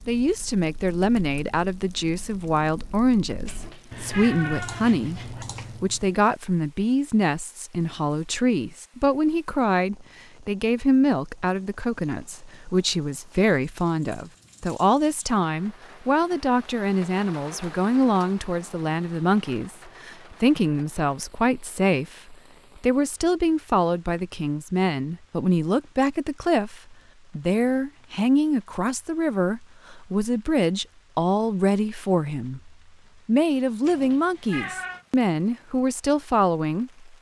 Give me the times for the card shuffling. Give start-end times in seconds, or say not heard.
not heard.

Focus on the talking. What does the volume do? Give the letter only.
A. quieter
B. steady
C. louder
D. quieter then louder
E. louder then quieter
B.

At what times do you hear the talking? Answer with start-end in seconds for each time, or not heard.
0.1-37.0.